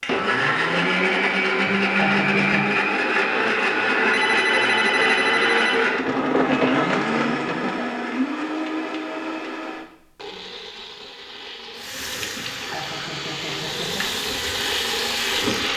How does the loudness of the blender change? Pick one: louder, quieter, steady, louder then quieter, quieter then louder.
quieter then louder.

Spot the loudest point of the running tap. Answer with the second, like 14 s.
15 s.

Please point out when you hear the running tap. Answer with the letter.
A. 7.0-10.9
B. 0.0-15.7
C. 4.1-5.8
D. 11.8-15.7
D.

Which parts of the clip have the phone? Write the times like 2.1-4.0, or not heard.
4.1-5.8.